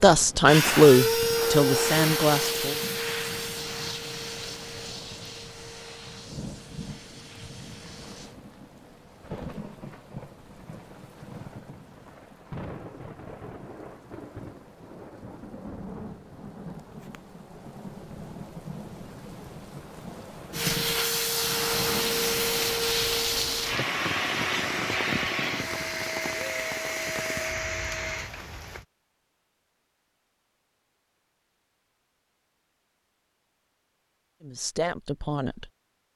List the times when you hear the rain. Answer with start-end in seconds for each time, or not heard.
0.0-28.9.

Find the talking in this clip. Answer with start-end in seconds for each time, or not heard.
0.0-2.8, 34.4-35.7.